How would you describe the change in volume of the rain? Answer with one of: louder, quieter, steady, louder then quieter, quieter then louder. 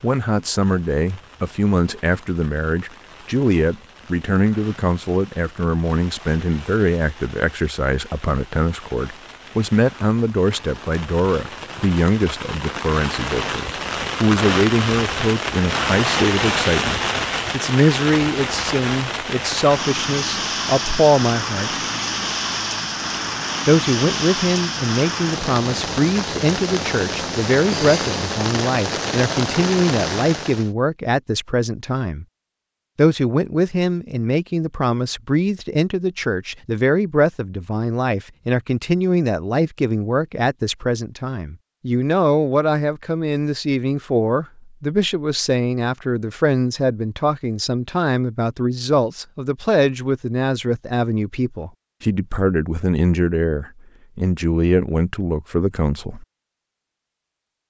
louder.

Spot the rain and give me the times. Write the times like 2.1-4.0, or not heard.
0.0-30.7.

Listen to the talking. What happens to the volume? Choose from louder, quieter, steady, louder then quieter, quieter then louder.
steady.